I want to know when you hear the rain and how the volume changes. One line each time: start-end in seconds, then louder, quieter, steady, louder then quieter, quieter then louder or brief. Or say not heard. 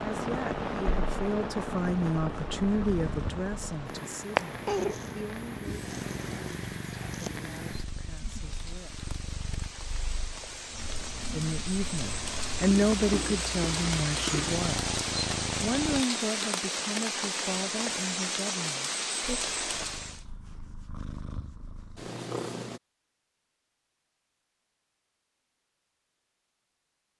0.0-20.2 quieter then louder.